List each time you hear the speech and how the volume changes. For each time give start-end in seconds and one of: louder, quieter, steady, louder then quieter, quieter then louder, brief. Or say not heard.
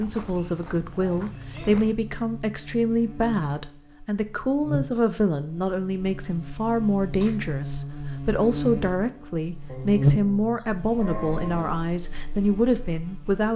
0.0-13.5 steady.